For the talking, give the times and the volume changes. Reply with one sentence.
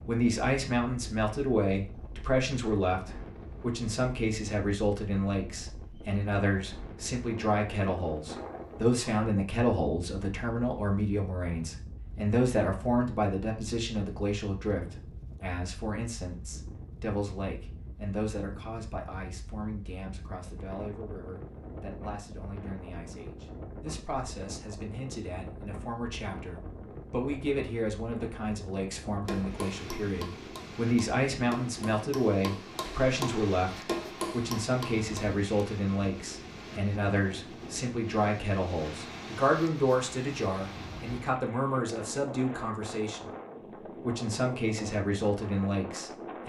You can hear the talking from 0.1 to 43.3 s, getting quieter then louder; and briefly from 44.0 to 46.4 s.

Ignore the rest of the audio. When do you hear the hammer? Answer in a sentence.
The hammer can be heard from 29.2 to 35.4 s.